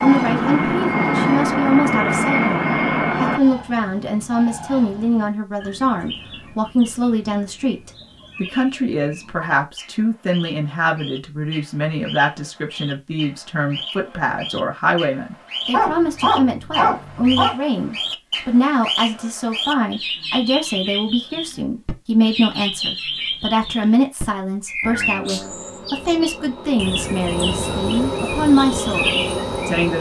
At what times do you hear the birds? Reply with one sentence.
You can hear the birds from 0.0 to 29.9 s.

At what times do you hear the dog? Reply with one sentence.
The dog can be heard from 15.7 to 17.6 s.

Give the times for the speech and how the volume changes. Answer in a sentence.
You can hear the speech from 0.0 to 29.9 s, at a steady volume.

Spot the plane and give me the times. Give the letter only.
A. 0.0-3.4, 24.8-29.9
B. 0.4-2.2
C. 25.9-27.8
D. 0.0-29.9
A.